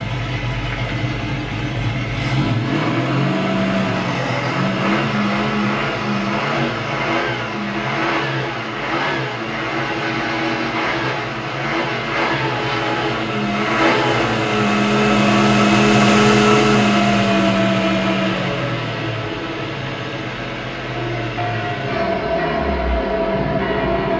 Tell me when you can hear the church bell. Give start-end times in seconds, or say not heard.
20.9-24.1.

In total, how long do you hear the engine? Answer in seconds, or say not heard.
24 s.